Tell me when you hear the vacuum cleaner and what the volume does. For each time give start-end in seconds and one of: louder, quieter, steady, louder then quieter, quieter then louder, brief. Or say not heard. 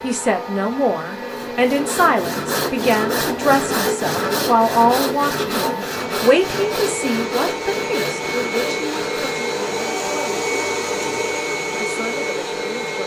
0.0-13.0 louder.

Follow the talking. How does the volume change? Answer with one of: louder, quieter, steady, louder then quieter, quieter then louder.
quieter.